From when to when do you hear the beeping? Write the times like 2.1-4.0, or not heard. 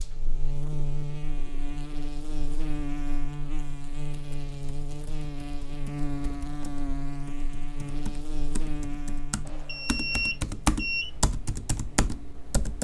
9.4-11.1.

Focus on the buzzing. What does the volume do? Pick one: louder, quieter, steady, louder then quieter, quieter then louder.
quieter.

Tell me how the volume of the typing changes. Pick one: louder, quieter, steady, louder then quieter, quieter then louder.
louder.